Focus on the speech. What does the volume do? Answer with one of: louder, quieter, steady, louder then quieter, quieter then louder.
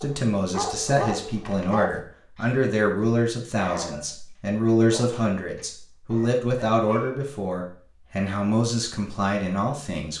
steady.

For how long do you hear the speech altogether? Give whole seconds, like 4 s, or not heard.
10 s.